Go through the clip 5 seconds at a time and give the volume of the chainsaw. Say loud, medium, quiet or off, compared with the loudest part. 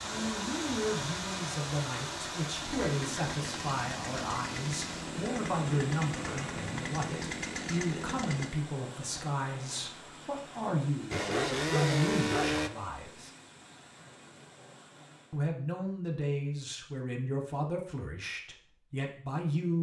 medium, medium, loud, off.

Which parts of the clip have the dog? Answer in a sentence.
The dog can be heard from 11.3 to 12.6 s.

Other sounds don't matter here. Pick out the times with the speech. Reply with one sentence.
The speech can be heard from 0.0 to 13.3 s and from 15.3 to 19.7 s.